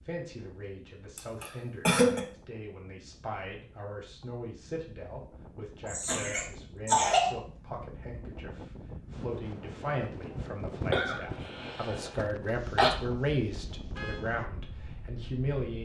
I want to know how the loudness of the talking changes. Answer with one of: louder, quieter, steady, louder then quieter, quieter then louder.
louder.